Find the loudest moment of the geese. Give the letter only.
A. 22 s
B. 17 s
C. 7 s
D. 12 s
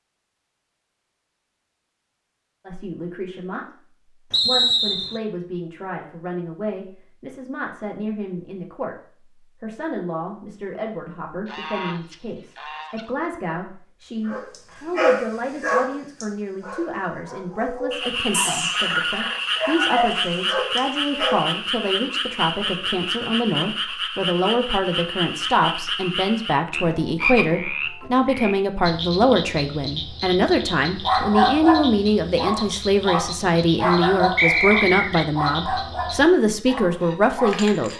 D.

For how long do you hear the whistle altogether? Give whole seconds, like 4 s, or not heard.
2 s.